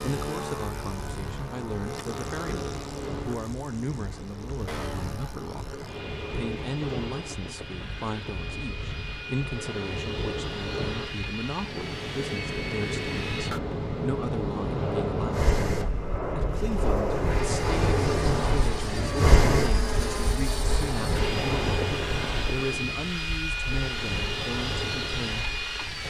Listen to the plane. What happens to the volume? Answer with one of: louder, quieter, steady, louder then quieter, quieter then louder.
louder.